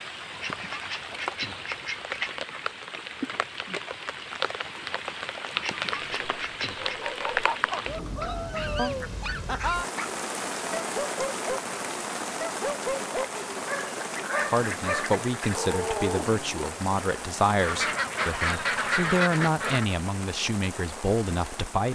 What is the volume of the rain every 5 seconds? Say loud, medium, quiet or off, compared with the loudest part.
loud, loud, loud, medium, medium.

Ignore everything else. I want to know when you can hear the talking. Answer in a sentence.
You can hear the talking from 14.4 to 21.8 s.